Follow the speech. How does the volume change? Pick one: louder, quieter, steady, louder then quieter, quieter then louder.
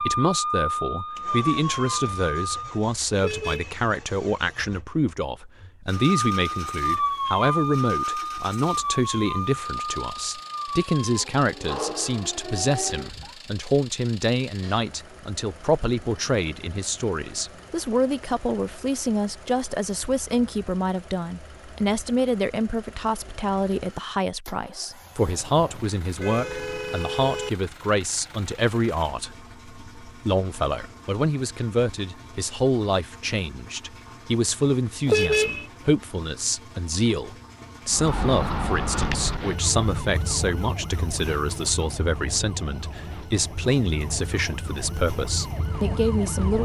steady.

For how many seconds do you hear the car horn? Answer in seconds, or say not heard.
3 s.